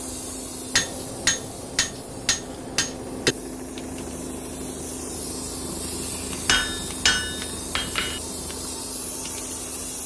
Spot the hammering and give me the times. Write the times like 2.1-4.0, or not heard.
0.7-3.4, 6.5-8.2.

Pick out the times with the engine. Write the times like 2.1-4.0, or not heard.
0.0-10.0.